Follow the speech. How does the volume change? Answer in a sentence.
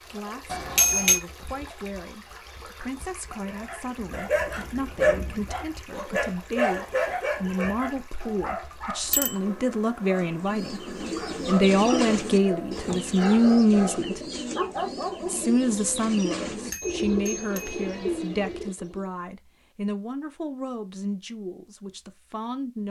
The loudness of the speech goes up, then down.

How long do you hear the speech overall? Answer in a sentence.
You can hear the speech for 22 seconds altogether.